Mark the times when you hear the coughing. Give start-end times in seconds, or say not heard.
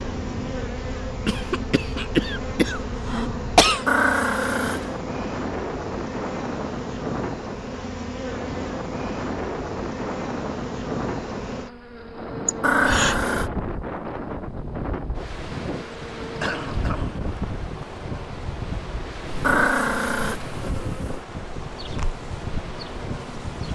1.2-3.9, 12.4-13.2, 16.3-17.9.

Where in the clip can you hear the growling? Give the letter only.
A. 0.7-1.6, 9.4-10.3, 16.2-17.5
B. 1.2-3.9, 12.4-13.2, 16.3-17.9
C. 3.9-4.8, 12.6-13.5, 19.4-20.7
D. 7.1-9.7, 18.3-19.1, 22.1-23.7
C.